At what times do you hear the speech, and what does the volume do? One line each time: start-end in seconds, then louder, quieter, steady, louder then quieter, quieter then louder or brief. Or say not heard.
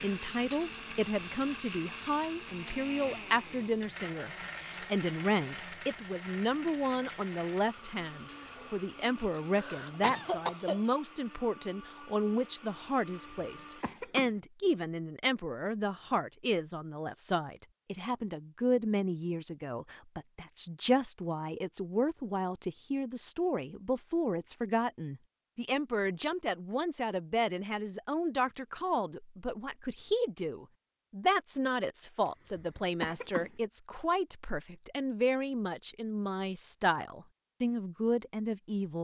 0.0-38.9 steady.